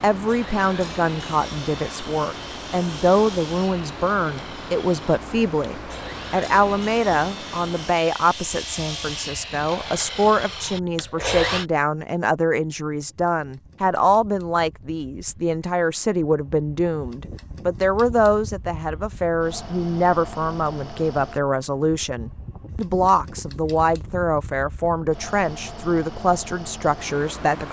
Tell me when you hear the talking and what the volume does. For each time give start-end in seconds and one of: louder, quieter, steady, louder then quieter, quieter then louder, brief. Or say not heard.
0.0-27.6 steady.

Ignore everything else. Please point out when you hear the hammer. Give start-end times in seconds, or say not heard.
not heard.